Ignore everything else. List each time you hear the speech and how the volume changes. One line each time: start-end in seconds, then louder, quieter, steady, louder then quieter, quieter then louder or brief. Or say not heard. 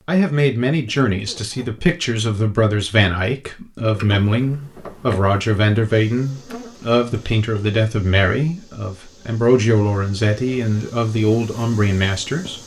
0.1-12.6 steady.